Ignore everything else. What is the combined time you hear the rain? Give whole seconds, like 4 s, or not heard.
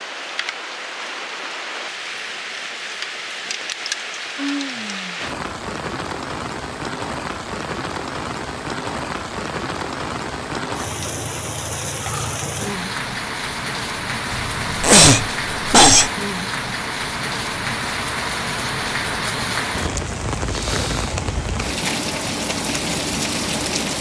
24 s.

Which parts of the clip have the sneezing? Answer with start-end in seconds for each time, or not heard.
14.3-16.1.